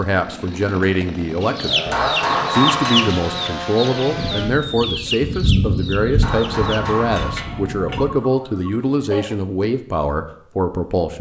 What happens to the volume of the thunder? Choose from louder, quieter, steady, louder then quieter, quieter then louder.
louder then quieter.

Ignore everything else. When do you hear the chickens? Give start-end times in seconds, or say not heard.
1.4-9.3.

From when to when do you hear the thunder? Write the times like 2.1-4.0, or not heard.
4.0-8.2.